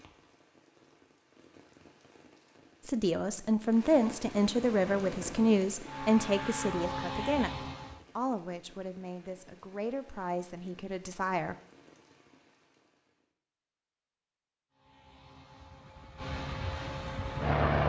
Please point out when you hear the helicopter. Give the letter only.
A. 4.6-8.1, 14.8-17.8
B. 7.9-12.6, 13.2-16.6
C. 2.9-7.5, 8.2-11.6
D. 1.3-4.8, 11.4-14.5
A.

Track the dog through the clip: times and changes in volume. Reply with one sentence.
You can't hear the dog here.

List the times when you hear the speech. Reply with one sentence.
The speech can be heard from 2.9 to 7.5 s and from 8.2 to 11.6 s.